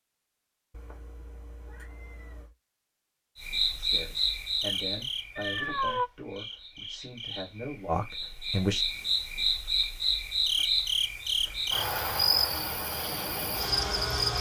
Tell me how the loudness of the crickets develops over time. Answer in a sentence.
The loudness of the crickets goes down, then up.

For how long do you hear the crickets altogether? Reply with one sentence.
You can hear the crickets for 11 seconds altogether.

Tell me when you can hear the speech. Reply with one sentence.
You can hear the speech from 3.7 to 8.8 s.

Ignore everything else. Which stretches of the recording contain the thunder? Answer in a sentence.
You can't hear the thunder here.